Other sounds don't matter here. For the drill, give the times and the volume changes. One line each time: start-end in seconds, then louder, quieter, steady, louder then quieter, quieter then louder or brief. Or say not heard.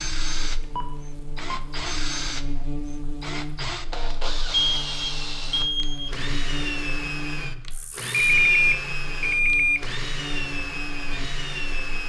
0.0-12.0 steady.